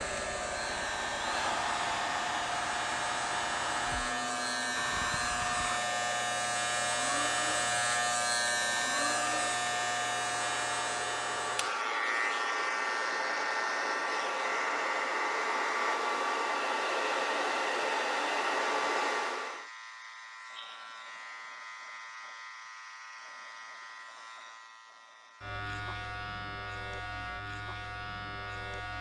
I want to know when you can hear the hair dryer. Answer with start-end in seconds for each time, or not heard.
0.0-19.6.